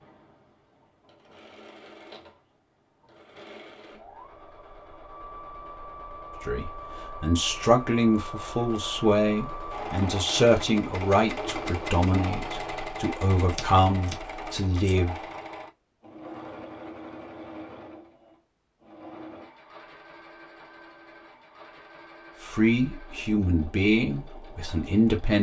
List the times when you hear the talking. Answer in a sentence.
The talking can be heard from 6.4 to 15.2 s and from 22.4 to 25.3 s.